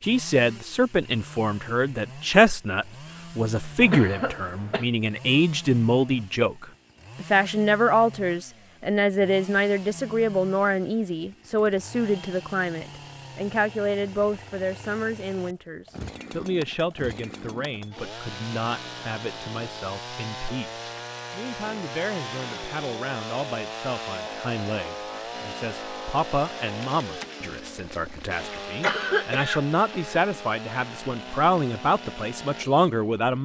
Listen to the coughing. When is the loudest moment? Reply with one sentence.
The volume of the coughing peaks at 29 seconds.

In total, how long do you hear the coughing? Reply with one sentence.
The coughing can be heard for 3 seconds in total.